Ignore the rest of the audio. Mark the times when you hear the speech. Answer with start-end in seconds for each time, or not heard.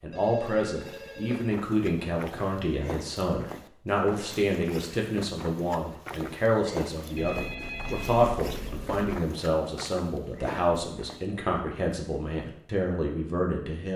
0.0-13.9.